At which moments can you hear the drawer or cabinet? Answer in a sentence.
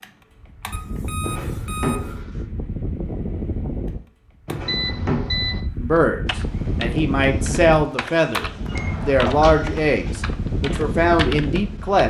The drawer or cabinet can be heard from 1.2 to 2.5 s, from 4.5 to 5.3 s and from 8.7 to 10.2 s.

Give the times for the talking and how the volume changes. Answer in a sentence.
The talking can be heard from 5.8 to 12.0 s, at a steady volume.